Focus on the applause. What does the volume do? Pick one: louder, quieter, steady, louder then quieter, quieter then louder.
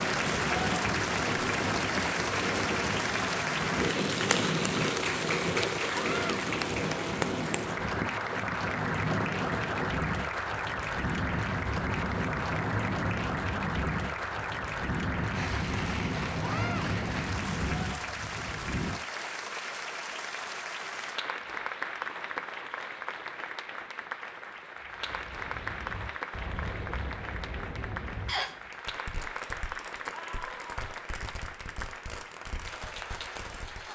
quieter.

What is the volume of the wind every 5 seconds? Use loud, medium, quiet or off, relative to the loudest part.
loud, loud, loud, loud, off, off, off.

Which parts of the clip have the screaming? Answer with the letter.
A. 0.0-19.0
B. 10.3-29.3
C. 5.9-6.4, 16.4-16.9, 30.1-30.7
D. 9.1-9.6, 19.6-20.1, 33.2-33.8
C.